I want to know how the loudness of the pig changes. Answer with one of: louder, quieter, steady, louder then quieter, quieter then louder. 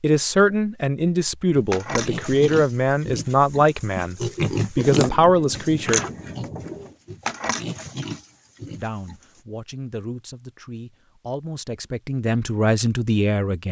louder then quieter.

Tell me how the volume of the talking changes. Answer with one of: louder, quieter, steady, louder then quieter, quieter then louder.
quieter then louder.